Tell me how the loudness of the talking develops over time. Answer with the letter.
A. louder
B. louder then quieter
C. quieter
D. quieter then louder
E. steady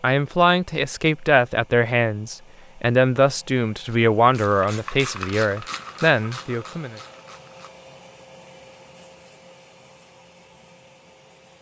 E.